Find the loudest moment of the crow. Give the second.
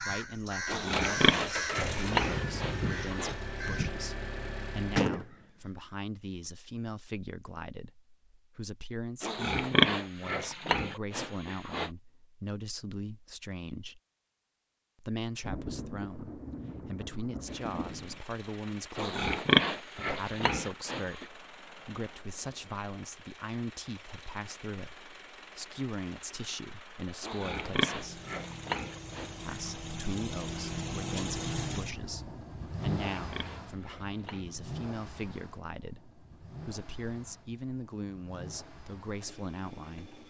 5 s.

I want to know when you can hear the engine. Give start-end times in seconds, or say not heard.
0.1-5.0, 17.4-40.2.